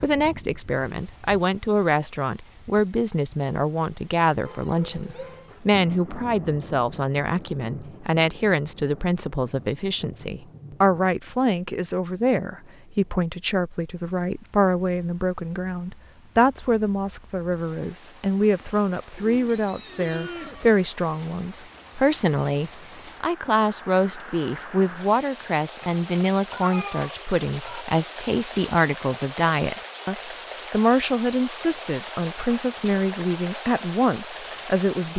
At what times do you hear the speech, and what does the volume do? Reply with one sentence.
The speech can be heard from 0.0 to 35.1 s, at a steady volume.